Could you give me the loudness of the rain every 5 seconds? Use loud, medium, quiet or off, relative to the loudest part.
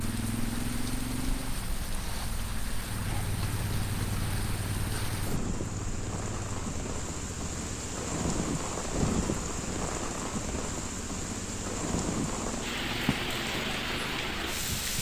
medium, loud, loud.